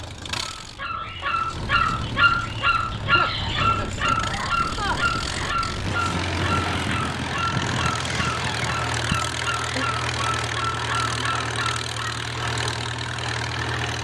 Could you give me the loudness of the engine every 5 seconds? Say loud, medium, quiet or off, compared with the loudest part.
medium, loud, loud.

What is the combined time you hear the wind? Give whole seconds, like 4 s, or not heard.
9 s.